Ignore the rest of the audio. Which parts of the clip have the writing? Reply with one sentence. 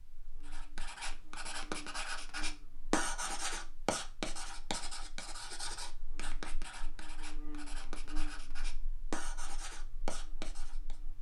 The writing can be heard from 0.5 to 11.0 s.